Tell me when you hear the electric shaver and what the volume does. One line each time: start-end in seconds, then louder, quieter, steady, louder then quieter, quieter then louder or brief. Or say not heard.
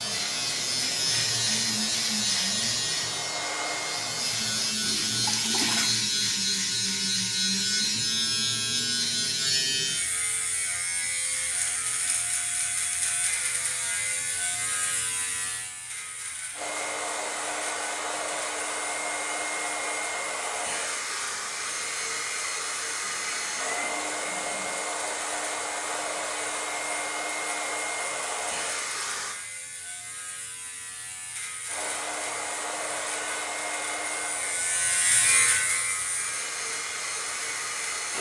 0.0-38.1 quieter then louder.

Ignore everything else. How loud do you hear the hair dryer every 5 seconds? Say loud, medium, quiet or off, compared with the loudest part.
medium, off, off, loud, loud, loud, loud, loud.